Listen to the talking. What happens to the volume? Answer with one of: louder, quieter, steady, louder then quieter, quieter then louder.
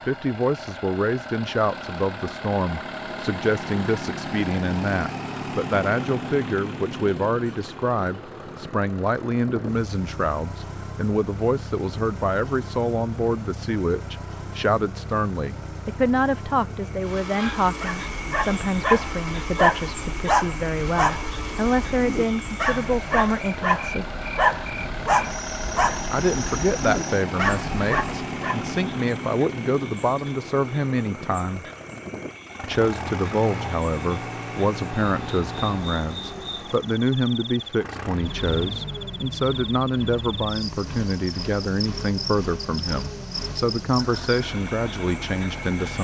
steady.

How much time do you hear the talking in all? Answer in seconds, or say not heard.
43 s.